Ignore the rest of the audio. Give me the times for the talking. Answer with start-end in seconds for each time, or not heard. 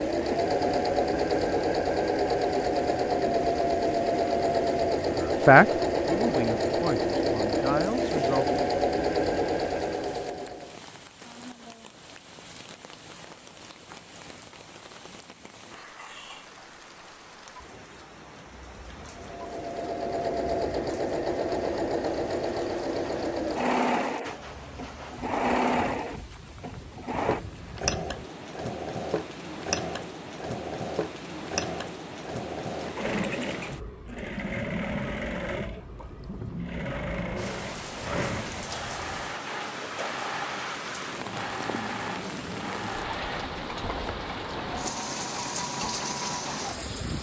5.2-8.6.